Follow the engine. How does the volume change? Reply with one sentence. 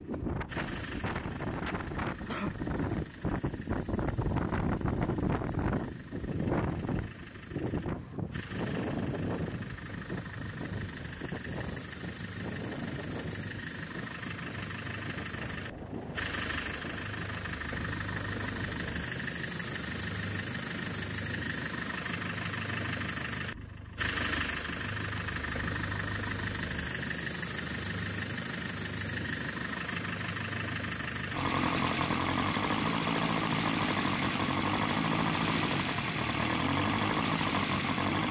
The volume of the engine goes up.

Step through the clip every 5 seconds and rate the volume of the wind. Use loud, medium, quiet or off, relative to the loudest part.
loud, loud, medium, medium, off, off, off, off.